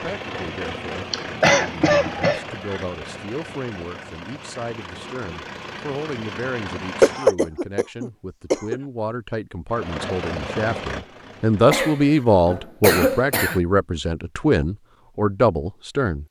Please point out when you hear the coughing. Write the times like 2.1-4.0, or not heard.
1.1-2.8, 7.0-8.8, 11.7-13.6.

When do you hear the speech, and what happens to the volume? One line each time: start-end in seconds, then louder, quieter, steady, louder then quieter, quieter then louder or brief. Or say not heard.
0.0-16.2 louder.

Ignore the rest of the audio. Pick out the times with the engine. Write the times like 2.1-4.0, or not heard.
0.0-7.3, 9.7-11.8.